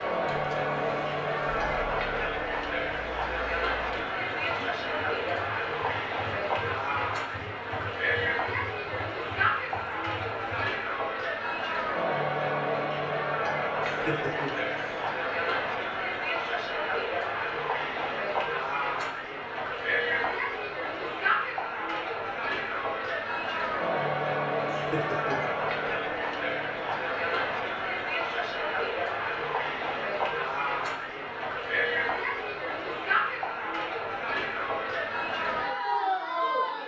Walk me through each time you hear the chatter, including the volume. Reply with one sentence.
The chatter can be heard from 0.0 to 36.8 s, at a steady volume.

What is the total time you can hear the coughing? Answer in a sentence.
You can hear the coughing for 2 seconds altogether.